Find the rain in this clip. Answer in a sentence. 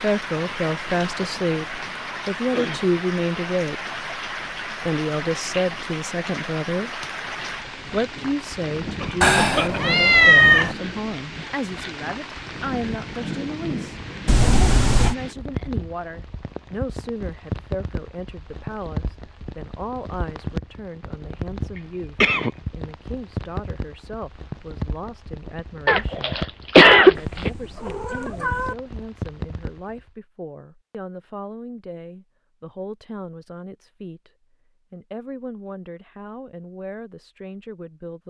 You can hear the rain from 0.0 to 30.1 s.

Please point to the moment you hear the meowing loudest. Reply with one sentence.
The loudest moment of the meowing is at 10 seconds.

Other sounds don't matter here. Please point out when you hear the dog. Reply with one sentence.
You can't hear the dog here.